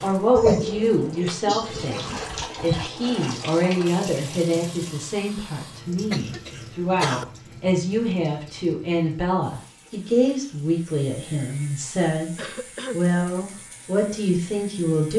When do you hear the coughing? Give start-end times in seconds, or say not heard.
0.3-2.9, 6.1-7.2, 12.3-13.0.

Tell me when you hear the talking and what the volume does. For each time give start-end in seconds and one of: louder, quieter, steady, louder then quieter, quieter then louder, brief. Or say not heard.
0.0-12.3 steady
12.9-15.1 brief.